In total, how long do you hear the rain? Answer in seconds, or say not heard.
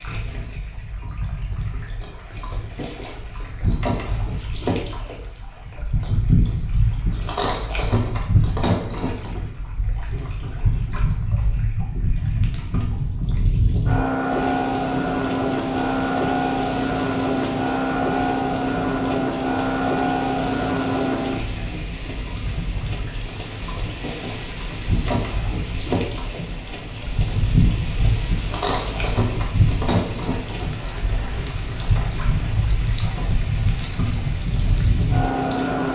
22 s.